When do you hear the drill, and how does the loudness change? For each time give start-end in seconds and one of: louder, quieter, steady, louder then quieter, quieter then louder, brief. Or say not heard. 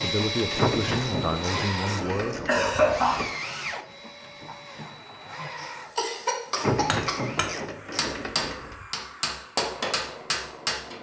0.0-10.9 quieter.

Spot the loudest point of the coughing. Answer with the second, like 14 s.
3 s.